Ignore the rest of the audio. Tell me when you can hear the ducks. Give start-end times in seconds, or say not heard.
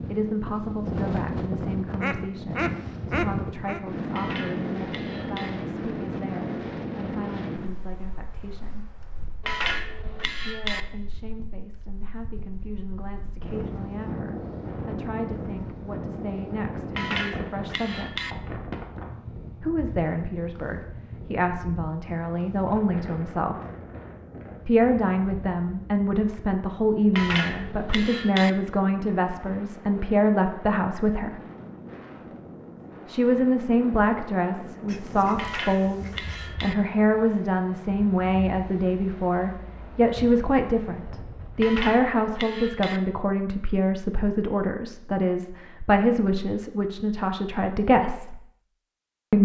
2.0-3.8, 34.9-36.5.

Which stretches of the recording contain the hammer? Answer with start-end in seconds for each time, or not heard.
4.1-5.5, 9.4-10.8, 16.9-18.4, 27.1-28.5, 35.4-36.8, 41.6-43.0.